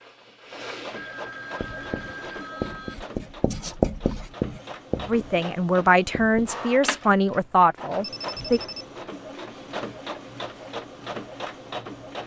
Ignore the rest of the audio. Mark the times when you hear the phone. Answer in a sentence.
You can hear the phone from 0.9 to 3.0 s and from 8.0 to 8.9 s.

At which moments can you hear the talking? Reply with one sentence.
The talking can be heard from 5.0 to 8.6 s.